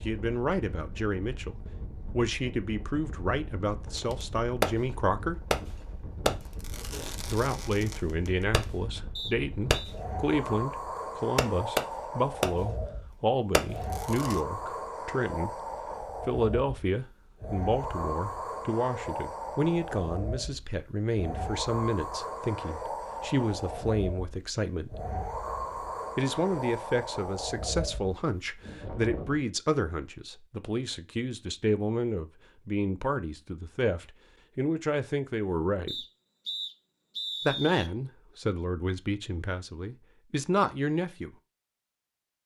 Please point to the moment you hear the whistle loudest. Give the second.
37 s.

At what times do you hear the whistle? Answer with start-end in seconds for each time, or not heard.
9.2-9.9, 35.9-37.9.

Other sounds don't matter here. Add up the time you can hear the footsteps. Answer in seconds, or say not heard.
not heard.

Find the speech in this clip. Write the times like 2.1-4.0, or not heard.
0.0-5.5, 7.2-15.7, 16.2-25.0, 26.1-36.0, 37.5-41.4.